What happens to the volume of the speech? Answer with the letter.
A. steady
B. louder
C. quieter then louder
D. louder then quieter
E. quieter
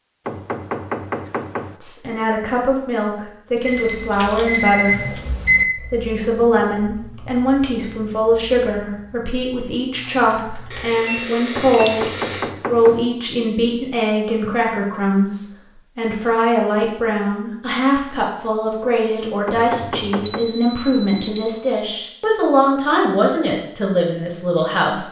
A.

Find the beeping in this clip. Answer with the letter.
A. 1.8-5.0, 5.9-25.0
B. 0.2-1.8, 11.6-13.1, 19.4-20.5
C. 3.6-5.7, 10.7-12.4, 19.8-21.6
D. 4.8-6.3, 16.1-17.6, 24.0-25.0
C.